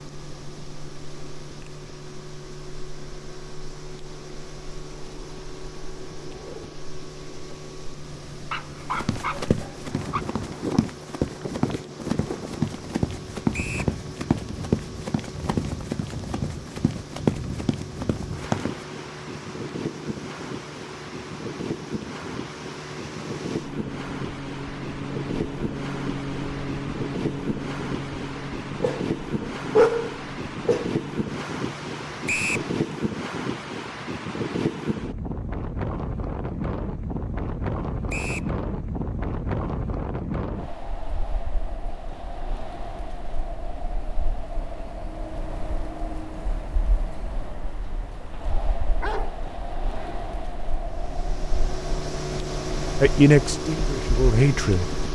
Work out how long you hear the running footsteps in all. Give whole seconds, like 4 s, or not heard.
10 s.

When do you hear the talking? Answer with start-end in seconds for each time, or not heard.
53.0-54.9.